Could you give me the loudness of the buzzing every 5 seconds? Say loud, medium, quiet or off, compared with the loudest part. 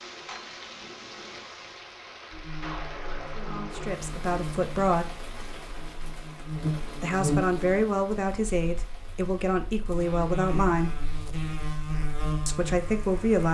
medium, loud, loud.